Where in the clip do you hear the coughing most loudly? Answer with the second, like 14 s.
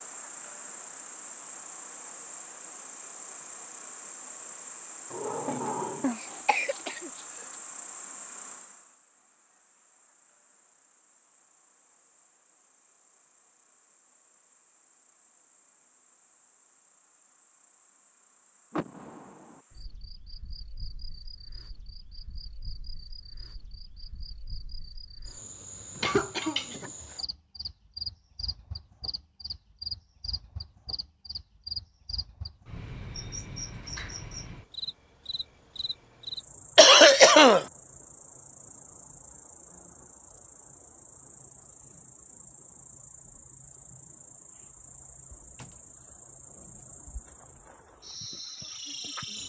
37 s.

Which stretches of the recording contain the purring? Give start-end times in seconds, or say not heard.
not heard.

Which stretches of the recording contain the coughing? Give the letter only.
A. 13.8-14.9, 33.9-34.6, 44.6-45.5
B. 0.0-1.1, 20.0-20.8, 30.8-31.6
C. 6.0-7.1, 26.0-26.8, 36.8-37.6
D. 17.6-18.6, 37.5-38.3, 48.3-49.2
C.